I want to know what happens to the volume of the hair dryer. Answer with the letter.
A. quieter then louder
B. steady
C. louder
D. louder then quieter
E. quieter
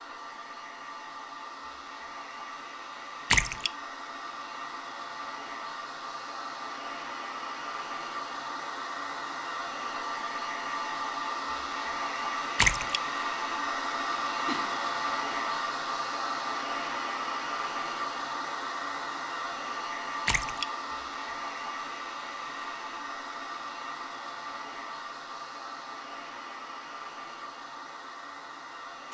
D.